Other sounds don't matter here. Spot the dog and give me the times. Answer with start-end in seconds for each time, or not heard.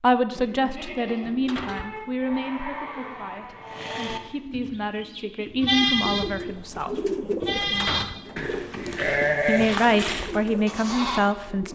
not heard.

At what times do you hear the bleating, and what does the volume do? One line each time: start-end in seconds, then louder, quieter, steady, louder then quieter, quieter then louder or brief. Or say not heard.
0.2-11.2 louder.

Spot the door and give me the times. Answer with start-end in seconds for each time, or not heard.
1.2-2.4, 7.6-8.2.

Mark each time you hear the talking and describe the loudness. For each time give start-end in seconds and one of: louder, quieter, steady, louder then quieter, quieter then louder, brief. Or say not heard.
0.0-6.9 quieter then louder
9.4-11.7 brief.